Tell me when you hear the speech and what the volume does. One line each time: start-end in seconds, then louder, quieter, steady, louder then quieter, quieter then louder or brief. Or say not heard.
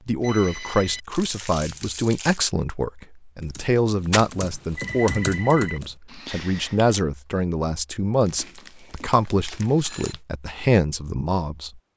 0.1-11.8 steady.